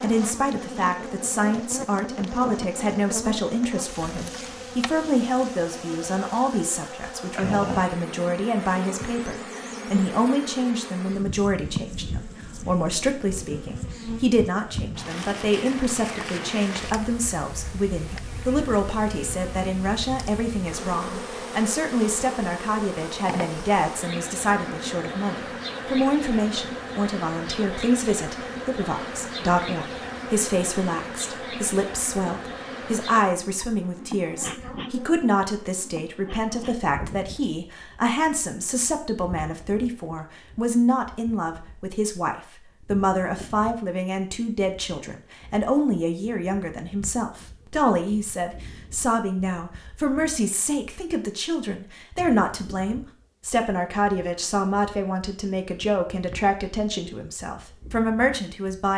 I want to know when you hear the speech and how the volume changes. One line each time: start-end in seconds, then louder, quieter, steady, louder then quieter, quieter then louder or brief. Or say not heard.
0.0-58.9 steady.